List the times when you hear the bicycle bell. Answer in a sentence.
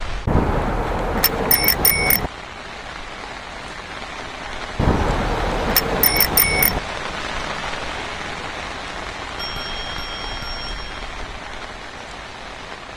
You can hear the bicycle bell from 0.2 to 2.3 s, from 4.8 to 6.8 s and from 9.3 to 11.4 s.